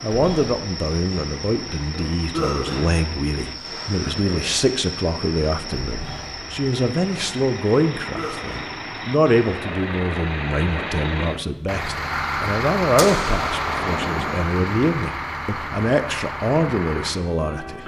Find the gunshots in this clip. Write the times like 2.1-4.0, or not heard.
12.9-14.4.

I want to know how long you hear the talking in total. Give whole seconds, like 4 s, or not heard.
18 s.